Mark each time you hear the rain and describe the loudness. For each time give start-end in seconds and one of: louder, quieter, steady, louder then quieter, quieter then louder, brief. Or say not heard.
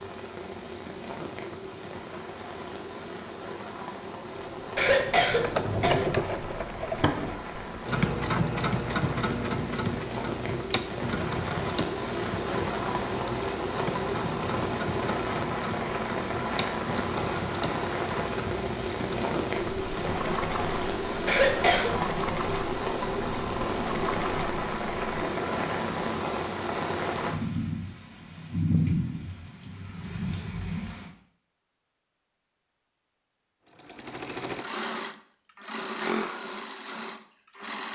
0.0-31.1 louder.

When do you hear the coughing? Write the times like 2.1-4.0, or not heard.
4.8-6.1, 21.2-21.9.